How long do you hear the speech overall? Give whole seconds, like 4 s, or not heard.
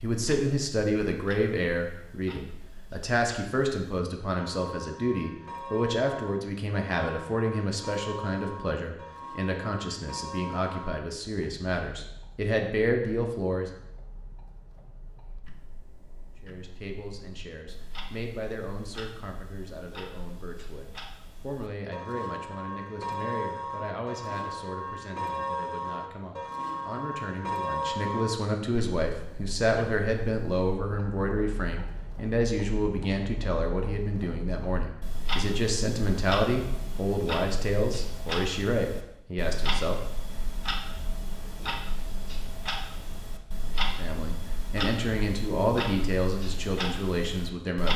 41 s.